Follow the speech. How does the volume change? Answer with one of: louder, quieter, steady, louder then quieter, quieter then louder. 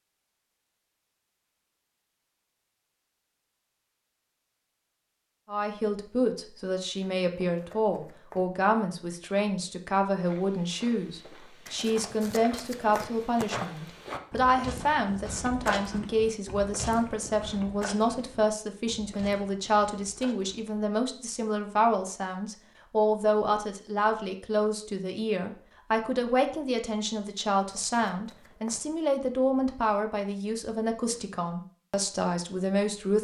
steady.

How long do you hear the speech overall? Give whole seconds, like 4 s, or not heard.
28 s.